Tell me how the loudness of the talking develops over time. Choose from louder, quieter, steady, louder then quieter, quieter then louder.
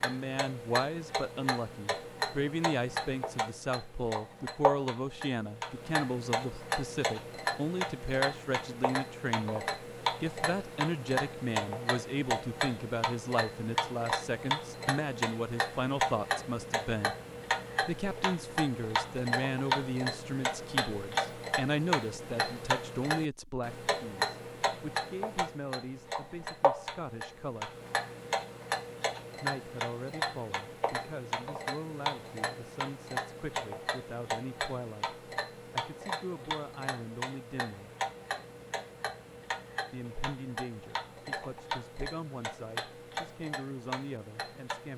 quieter.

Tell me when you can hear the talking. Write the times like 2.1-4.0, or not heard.
0.0-17.1, 17.8-27.8, 29.4-37.9, 39.9-44.9.